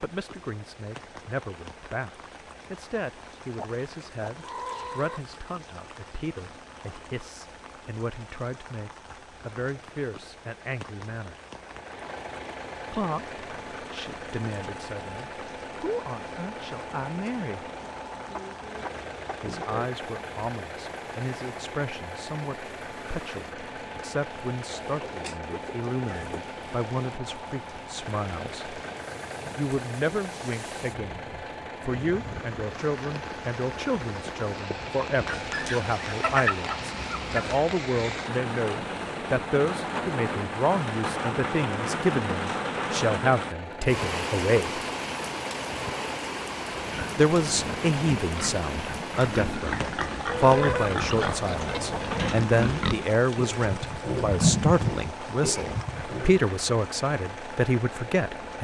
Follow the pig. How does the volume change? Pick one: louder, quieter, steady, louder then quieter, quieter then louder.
louder.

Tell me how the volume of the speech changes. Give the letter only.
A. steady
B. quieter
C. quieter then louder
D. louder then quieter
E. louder
E.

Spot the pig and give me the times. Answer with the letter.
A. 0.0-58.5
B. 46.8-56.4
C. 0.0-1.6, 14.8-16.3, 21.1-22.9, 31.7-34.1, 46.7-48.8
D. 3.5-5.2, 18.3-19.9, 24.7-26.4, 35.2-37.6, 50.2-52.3
B.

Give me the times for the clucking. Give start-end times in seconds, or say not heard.
3.5-5.2, 18.3-19.9, 24.7-26.4, 35.2-37.6, 50.2-52.3.